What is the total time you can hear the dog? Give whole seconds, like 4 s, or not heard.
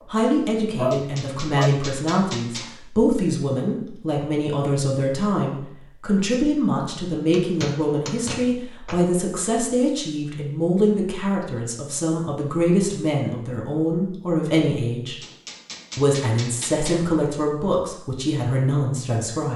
2 s.